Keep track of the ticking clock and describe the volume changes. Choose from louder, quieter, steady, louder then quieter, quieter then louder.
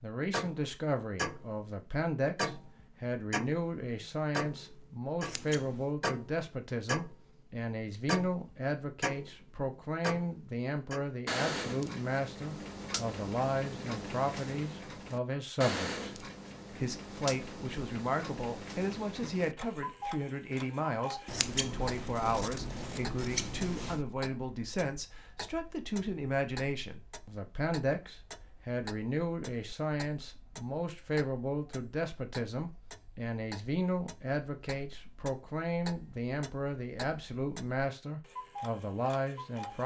quieter.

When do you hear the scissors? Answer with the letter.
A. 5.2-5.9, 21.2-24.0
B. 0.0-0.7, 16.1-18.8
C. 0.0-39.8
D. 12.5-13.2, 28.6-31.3
A.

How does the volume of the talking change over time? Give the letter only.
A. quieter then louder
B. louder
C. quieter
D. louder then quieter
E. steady
E.